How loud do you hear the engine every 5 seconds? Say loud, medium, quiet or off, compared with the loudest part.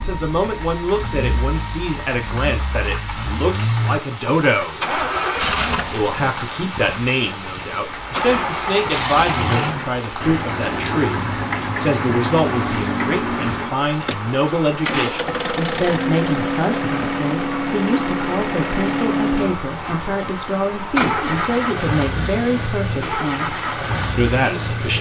medium, loud, loud, loud, loud.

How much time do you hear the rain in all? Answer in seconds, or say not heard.
25 s.